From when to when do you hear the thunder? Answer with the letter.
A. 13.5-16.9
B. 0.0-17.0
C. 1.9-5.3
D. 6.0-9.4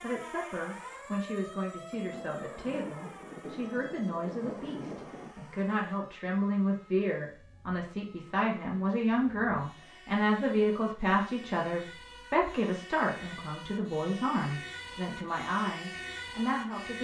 C.